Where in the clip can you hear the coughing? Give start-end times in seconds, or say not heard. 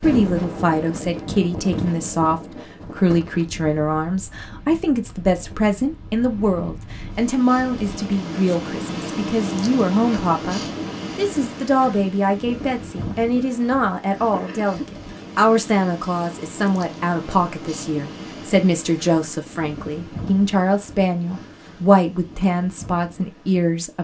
14.3-15.2.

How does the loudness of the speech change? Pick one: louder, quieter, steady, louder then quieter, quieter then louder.
steady.